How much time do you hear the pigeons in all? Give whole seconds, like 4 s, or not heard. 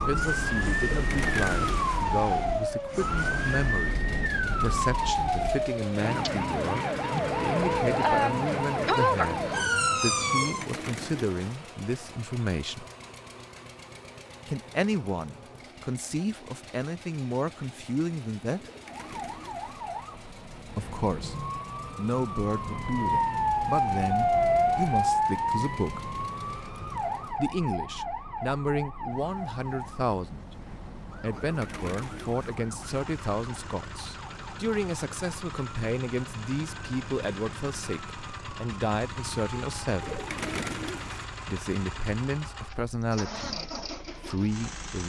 6 s.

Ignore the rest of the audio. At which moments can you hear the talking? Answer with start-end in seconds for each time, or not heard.
0.0-12.8, 14.4-18.7, 20.8-21.4, 21.9-26.0, 27.3-40.2, 41.5-45.0.